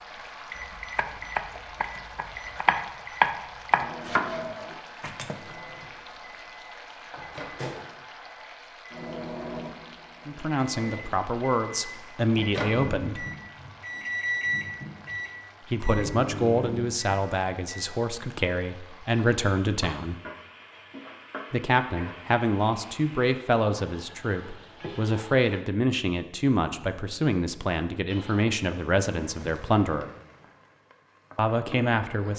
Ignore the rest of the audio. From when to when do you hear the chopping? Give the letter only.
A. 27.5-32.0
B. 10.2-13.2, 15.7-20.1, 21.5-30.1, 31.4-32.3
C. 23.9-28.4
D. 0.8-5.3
D.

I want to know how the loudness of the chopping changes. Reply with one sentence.
The loudness of the chopping goes up, then down.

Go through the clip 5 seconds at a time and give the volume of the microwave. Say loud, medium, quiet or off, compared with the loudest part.
medium, medium, loud, loud, off, off, off.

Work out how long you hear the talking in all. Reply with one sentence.
You can hear the talking for 17 seconds altogether.